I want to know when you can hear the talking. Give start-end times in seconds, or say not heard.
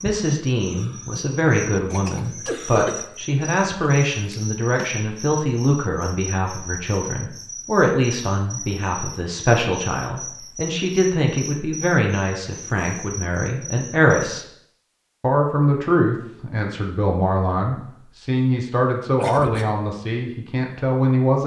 0.0-14.4, 15.2-21.4.